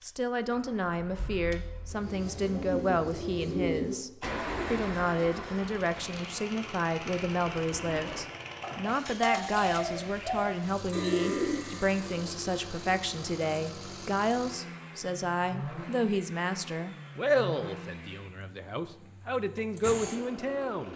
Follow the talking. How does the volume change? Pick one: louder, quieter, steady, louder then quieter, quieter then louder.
steady.